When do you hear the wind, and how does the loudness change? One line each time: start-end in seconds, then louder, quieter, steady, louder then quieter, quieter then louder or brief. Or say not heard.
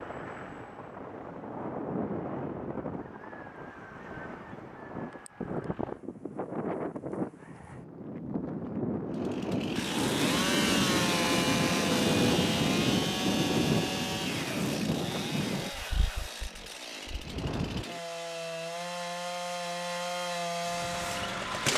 0.0-17.9 louder then quieter.